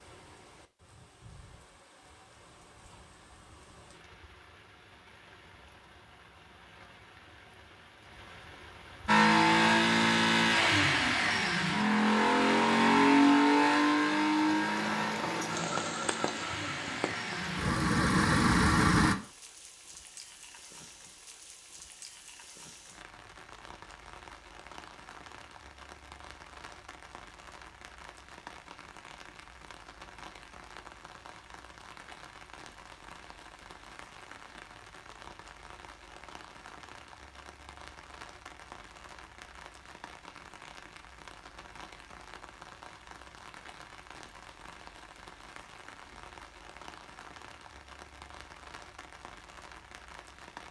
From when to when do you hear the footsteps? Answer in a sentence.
The footsteps can't be heard in this clip.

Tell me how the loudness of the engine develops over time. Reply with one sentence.
The volume of the engine goes down, then up.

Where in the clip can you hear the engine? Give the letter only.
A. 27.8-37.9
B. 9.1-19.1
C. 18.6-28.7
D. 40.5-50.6
B.